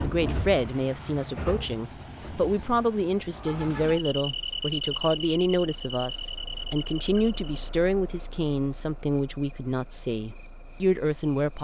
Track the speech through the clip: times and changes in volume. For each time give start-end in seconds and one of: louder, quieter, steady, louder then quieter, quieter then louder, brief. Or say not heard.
0.0-11.5 steady.